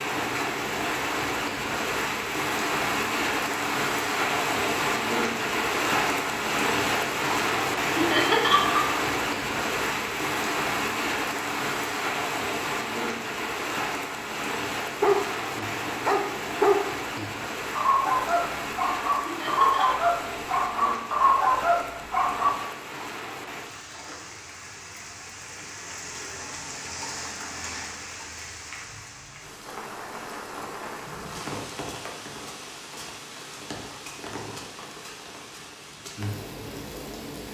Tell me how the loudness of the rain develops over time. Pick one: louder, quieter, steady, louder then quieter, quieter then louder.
quieter.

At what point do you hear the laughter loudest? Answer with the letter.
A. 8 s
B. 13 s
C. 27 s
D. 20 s
A.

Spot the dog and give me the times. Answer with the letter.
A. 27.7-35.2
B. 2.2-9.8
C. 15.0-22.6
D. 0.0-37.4
C.